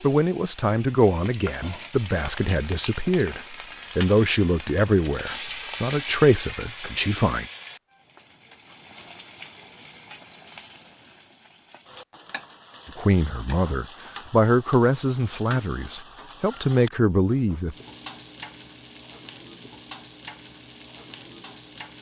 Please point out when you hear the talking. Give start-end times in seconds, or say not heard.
0.0-7.5, 12.8-17.8.